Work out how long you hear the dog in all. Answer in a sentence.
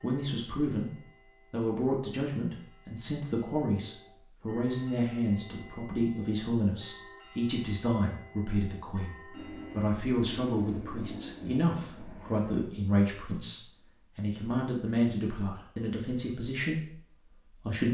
The dog can't be heard in this clip.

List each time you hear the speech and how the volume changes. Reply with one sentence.
The speech can be heard from 0.0 to 17.8 s, at a steady volume.